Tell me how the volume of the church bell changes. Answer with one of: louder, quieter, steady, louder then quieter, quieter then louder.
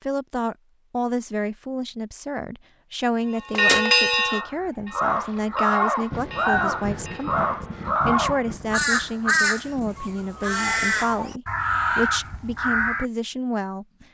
quieter.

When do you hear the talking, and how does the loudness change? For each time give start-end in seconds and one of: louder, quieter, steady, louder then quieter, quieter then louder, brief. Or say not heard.
0.0-14.0 steady.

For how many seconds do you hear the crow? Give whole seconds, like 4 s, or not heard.
9 s.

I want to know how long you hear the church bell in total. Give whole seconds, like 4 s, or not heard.
4 s.